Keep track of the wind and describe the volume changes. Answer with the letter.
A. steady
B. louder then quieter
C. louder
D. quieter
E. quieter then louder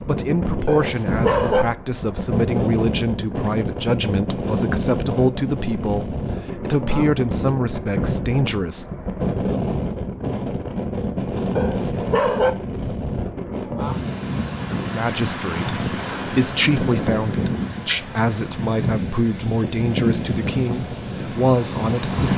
A.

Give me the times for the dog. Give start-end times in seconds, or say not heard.
0.7-1.6, 11.6-12.5.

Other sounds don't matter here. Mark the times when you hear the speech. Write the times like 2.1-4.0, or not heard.
0.1-8.8, 14.8-22.3.